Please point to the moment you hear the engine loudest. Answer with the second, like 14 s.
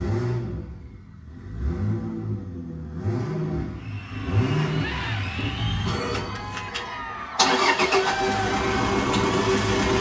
8 s.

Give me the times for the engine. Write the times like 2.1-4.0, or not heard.
0.0-9.9.